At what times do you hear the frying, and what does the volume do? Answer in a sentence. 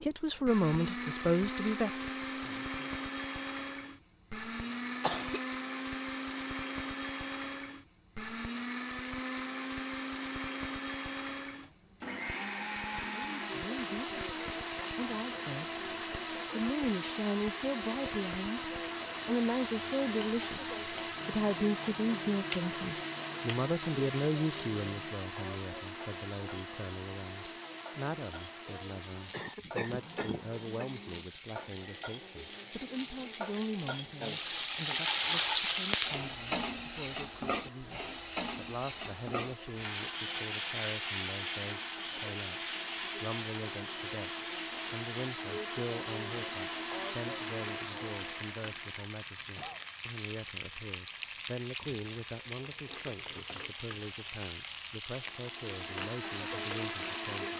The frying can be heard from 0.0 to 57.4 s, getting louder then quieter.